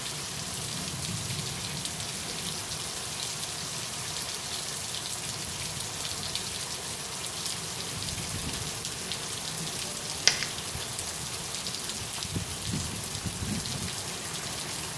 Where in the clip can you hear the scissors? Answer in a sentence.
You can't hear the scissors here.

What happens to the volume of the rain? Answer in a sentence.
The loudness of the rain stays about the same.